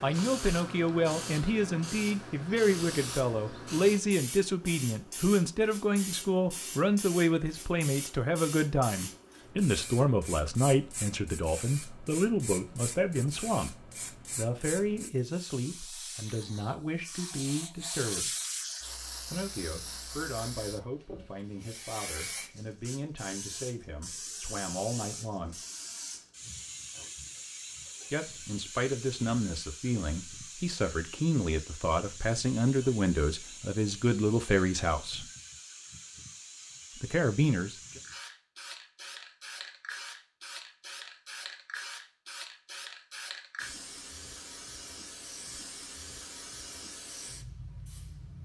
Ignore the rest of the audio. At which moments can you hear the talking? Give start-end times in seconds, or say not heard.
0.0-13.8, 14.3-18.3, 19.2-25.6, 28.1-35.2, 37.0-37.8.